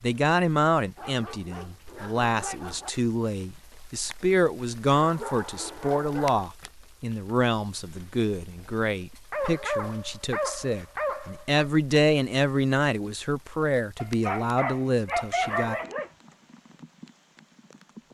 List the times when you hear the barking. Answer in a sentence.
The barking can be heard from 0.9 to 2.9 s, from 5.0 to 6.4 s, from 9.3 to 11.7 s and from 13.9 to 16.1 s.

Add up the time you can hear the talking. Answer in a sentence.
The talking can be heard for 16 seconds in total.